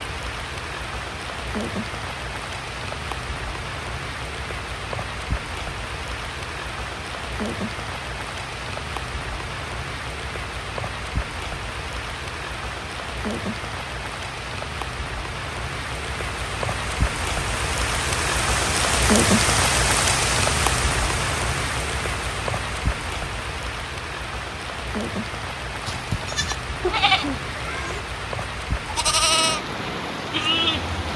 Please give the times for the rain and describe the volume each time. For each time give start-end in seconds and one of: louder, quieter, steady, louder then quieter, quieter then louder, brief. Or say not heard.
0.0-31.1 louder then quieter.